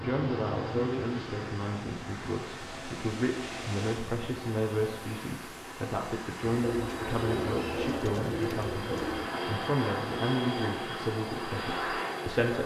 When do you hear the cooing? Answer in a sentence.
You can hear the cooing from 6.5 to 9.4 s.